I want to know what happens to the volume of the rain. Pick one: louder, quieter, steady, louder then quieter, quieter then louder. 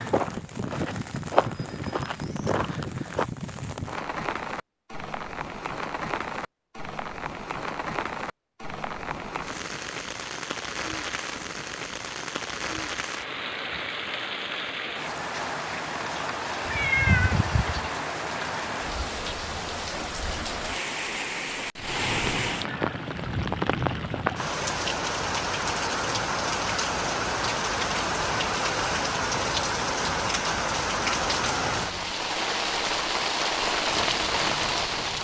louder.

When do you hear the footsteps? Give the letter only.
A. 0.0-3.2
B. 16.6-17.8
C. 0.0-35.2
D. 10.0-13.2
A.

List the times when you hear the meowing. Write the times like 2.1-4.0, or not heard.
16.6-17.8.